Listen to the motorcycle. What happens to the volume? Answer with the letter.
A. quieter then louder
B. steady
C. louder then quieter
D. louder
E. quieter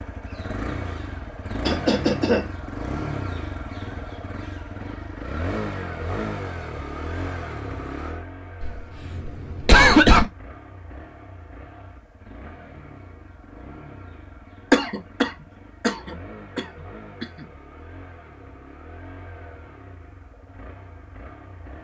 E.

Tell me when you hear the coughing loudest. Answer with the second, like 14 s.
10 s.